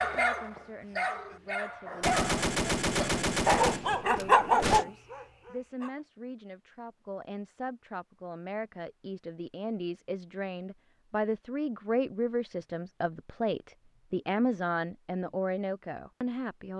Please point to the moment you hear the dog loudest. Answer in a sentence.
The loudest moment of the dog is at 4 seconds.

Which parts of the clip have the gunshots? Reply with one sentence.
You can hear the gunshots from 2.0 to 4.8 s.